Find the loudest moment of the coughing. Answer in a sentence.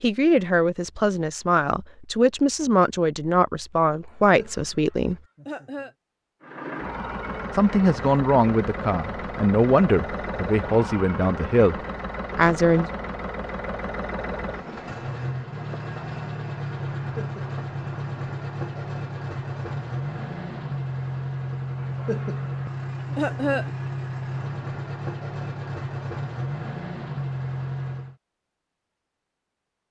The loudest moment of the coughing is at 23 seconds.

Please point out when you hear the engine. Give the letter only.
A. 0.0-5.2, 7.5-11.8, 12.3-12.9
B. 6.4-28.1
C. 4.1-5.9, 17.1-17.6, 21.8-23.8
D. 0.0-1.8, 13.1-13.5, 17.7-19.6
B.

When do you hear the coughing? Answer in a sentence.
You can hear the coughing from 4.1 to 5.9 s, from 17.1 to 17.6 s and from 21.8 to 23.8 s.